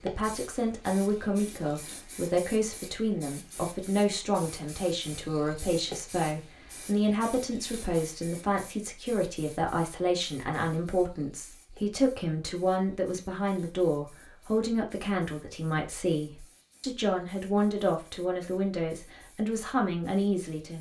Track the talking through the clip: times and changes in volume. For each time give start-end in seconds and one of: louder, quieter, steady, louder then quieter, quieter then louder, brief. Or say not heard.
0.0-20.7 steady.